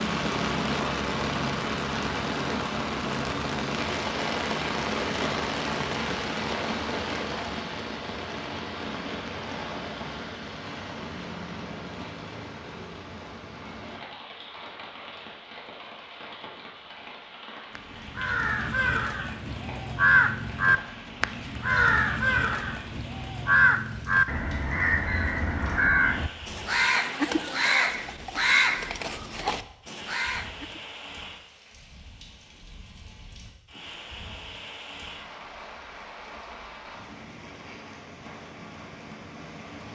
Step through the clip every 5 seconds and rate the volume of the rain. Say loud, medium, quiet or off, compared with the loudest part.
loud, loud, medium, quiet, quiet, quiet, quiet, quiet.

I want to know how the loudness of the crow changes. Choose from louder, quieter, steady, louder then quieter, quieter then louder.
steady.